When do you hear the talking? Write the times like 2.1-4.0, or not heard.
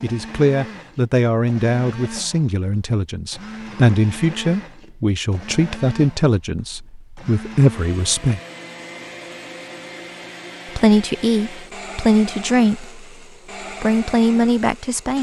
0.0-8.4, 10.8-12.9, 13.8-15.1.